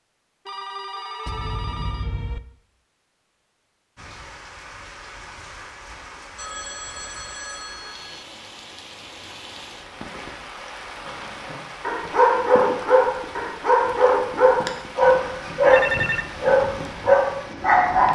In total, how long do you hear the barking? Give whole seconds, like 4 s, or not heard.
7 s.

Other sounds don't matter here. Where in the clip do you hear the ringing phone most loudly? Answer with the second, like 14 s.
16 s.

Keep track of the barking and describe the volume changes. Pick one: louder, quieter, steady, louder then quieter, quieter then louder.
steady.